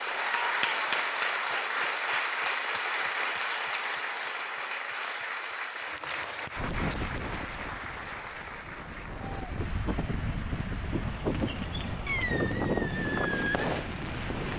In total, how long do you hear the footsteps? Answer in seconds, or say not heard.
not heard.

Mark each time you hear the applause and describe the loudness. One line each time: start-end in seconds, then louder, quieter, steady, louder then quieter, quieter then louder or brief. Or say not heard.
0.0-14.3 quieter.